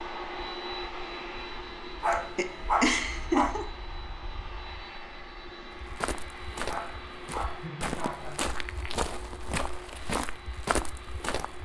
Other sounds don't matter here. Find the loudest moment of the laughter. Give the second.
3 s.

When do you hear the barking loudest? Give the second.
3 s.